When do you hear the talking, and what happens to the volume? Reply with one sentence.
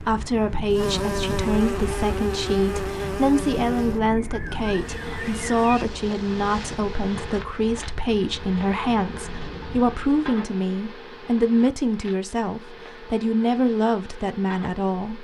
You can hear the talking from 0.0 to 15.1 s, at a steady volume.